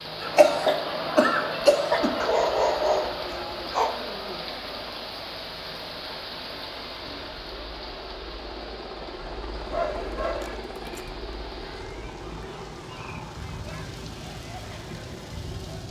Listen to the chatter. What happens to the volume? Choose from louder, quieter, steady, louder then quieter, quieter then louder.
quieter.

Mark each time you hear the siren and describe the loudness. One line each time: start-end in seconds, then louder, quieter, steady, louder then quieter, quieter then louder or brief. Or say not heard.
not heard.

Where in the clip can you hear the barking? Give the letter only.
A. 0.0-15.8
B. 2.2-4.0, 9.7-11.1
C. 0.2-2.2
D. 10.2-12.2
B.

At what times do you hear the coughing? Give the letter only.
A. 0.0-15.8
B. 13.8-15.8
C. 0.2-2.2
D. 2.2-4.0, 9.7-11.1
C.